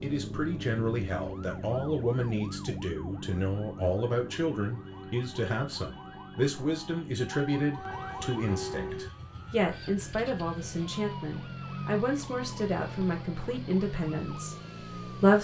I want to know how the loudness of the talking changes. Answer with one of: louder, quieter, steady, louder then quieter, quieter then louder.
steady.